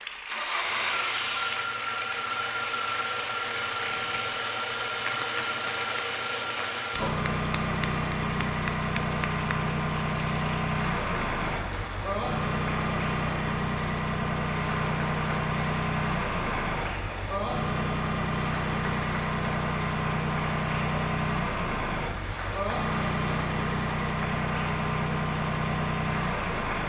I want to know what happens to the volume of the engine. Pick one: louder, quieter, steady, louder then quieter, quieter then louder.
steady.